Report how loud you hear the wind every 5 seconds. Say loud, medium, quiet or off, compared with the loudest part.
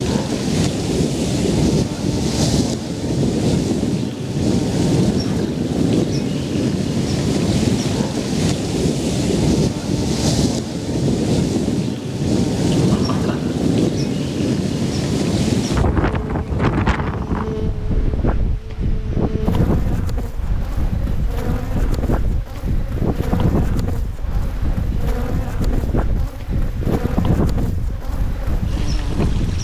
loud, loud, loud, loud, medium, medium.